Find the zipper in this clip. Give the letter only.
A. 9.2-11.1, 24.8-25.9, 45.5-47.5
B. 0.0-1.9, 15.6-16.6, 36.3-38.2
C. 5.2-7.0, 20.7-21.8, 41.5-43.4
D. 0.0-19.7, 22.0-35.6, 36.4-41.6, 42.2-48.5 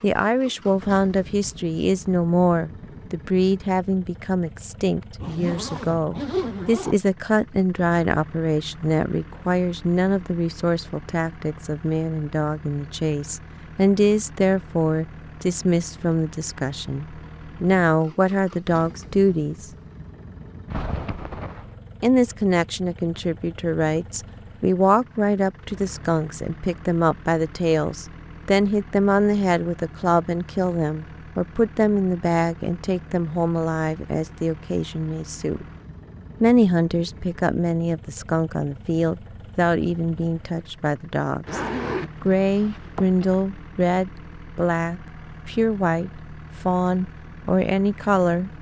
C.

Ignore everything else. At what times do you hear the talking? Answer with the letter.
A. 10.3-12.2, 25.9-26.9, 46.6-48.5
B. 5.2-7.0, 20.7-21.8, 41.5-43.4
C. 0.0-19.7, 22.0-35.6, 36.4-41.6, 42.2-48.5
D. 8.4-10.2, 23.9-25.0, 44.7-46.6
C.